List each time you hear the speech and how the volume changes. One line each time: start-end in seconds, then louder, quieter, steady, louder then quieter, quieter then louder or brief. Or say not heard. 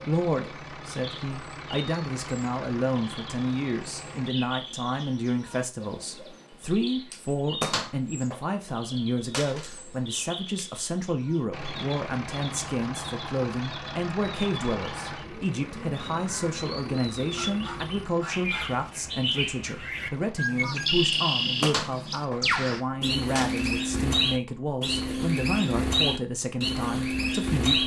0.0-27.8 steady.